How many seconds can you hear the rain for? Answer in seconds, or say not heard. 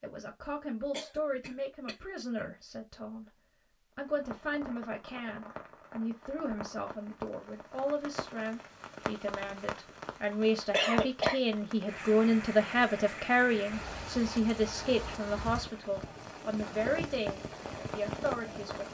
15 s.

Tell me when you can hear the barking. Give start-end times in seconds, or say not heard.
not heard.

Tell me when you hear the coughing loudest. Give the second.
11 s.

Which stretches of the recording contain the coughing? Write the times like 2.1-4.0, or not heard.
0.9-2.5, 10.3-11.3.